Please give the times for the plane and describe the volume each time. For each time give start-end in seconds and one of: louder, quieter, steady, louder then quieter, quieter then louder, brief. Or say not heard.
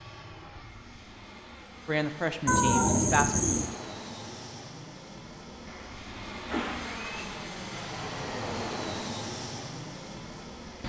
0.0-10.8 louder.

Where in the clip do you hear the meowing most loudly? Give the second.
3 s.